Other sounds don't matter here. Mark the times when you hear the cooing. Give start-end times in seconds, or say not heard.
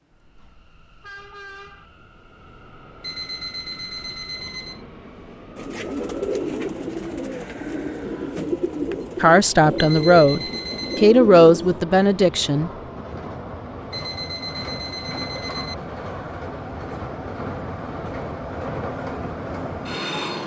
5.5-11.8.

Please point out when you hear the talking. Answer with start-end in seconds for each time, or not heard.
9.2-12.7.